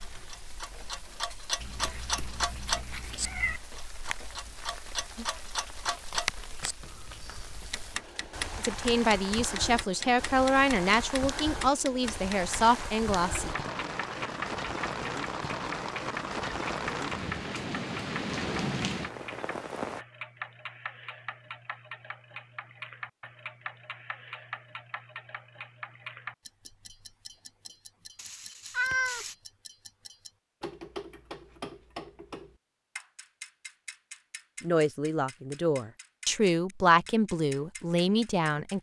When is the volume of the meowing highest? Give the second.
29 s.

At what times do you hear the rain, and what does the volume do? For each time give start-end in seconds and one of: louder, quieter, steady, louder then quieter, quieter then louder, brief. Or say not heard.
0.0-20.1 louder.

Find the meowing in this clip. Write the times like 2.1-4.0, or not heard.
1.6-3.6, 28.1-29.4.